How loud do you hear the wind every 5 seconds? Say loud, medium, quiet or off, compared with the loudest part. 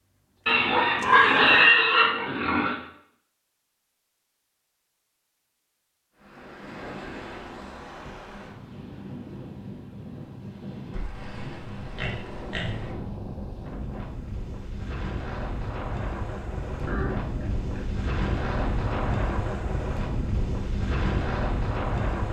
off, medium, medium, loud, loud.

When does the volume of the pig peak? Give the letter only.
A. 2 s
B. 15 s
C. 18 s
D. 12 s
A.